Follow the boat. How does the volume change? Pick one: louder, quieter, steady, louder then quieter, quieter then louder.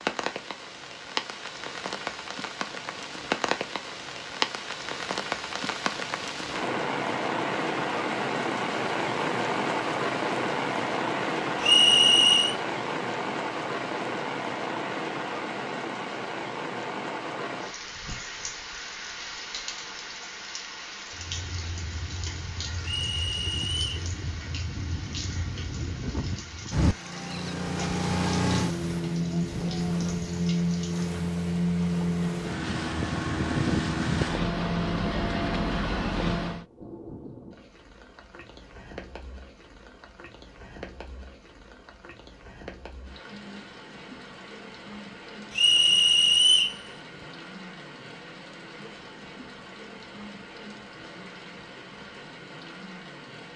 louder.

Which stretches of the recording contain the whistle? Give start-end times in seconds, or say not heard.
11.6-12.6, 22.8-23.9, 45.5-46.8.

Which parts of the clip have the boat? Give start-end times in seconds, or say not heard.
21.1-36.6.